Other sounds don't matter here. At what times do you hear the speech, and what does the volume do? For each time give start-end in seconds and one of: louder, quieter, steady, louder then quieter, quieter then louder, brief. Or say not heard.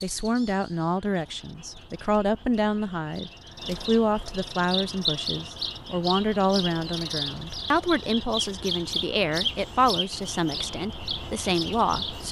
0.0-12.2 steady.